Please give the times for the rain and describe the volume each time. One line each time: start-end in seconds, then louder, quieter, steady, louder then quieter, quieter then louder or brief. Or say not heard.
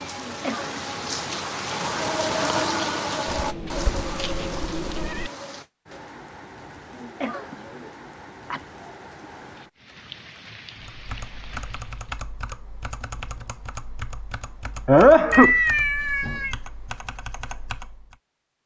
0.0-12.2 quieter.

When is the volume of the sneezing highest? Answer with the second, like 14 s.
15 s.